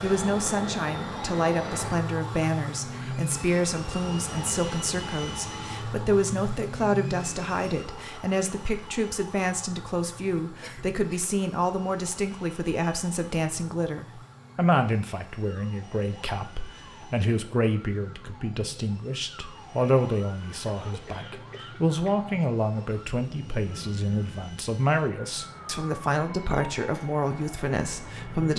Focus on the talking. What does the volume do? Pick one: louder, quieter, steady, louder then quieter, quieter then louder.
steady.